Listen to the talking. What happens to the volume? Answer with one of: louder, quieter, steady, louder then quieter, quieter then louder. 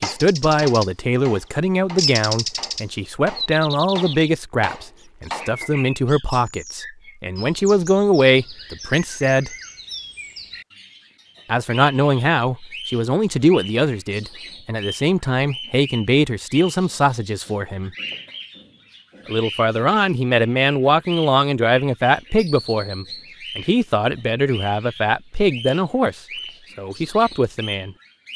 steady.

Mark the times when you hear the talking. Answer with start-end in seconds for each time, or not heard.
0.0-9.5, 11.4-17.9, 19.2-27.9.